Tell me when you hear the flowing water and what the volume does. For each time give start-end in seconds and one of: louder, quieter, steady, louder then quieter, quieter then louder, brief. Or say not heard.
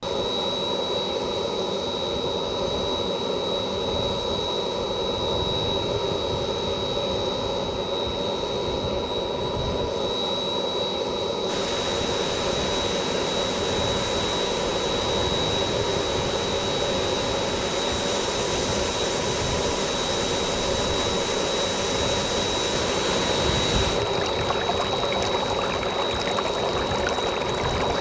11.4-27.9 steady.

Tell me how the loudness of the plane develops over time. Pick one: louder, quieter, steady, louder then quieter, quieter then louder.
steady.